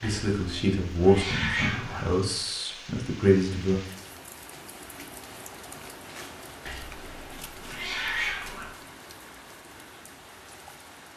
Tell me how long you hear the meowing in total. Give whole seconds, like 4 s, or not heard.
4 s.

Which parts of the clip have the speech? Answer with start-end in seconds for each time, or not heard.
0.0-3.8.